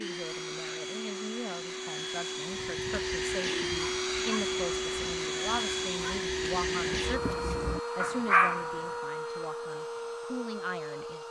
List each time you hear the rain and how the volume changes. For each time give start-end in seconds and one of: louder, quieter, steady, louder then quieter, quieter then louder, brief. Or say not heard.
not heard.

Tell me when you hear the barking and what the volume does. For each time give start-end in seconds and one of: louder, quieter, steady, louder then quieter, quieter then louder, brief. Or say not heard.
2.5-8.9 louder.